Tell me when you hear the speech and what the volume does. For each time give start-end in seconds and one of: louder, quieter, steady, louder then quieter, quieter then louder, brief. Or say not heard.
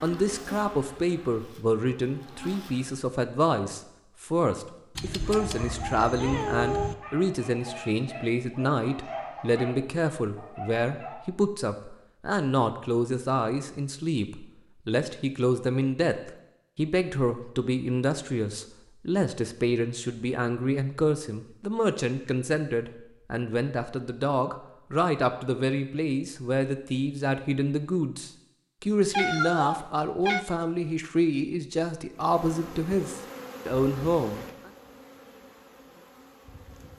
0.0-34.7 steady.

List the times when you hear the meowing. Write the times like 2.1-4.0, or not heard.
5.0-7.0, 29.1-30.4.